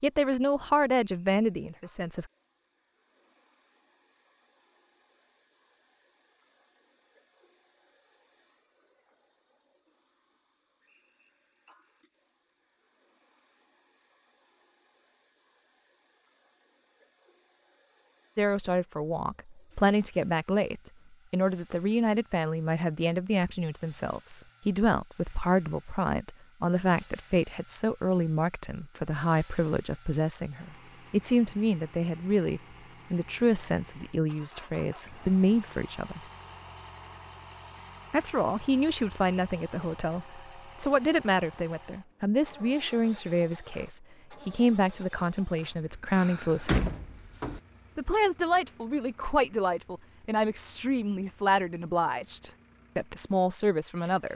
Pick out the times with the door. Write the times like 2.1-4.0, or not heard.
46.1-47.6.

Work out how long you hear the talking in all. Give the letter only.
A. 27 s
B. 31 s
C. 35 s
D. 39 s
C.